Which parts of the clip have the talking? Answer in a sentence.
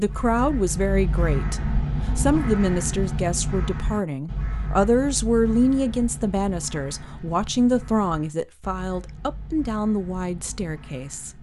The talking can be heard from 0.0 to 11.3 s.